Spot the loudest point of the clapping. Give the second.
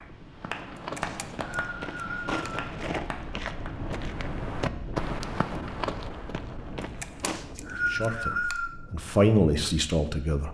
1 s.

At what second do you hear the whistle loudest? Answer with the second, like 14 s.
8 s.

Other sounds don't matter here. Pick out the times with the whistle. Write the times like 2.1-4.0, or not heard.
1.0-2.6, 7.2-8.7.